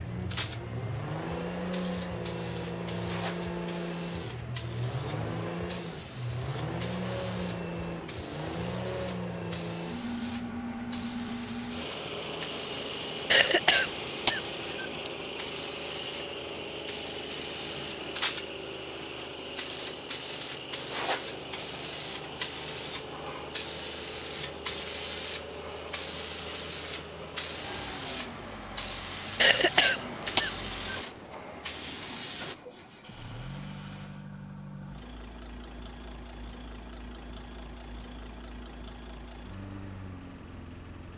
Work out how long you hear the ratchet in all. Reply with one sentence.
You can't hear the ratchet here.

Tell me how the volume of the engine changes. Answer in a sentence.
The volume of the engine goes down.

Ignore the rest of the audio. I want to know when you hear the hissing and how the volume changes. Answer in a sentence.
The hissing can be heard from 0.0 to 32.5 s, getting louder.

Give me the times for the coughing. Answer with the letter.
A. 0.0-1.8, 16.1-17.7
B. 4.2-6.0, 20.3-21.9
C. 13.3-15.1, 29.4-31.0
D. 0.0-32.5
C.